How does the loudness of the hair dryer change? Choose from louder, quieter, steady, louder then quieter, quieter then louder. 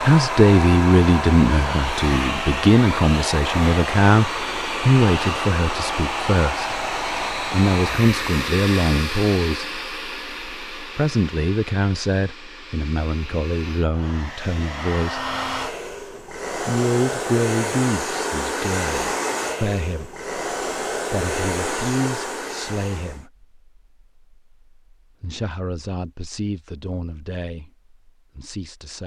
quieter then louder.